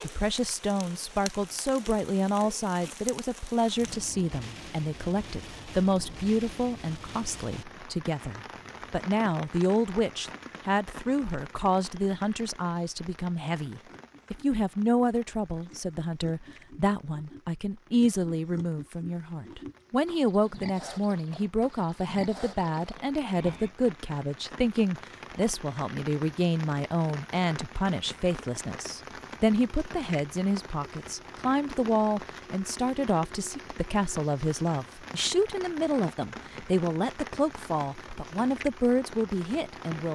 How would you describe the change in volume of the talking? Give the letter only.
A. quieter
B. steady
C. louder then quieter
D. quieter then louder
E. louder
B.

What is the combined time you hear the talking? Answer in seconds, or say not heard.
40 s.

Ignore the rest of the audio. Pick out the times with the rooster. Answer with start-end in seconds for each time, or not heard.
not heard.